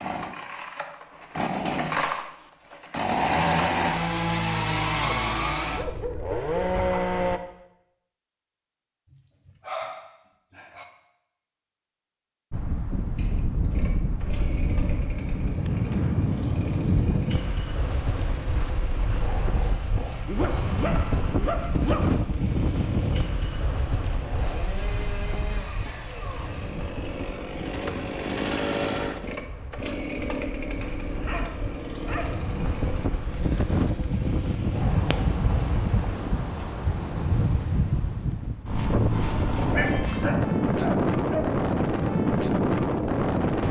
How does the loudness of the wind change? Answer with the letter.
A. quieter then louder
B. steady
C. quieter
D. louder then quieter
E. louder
A.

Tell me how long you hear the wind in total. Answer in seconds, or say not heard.
31 s.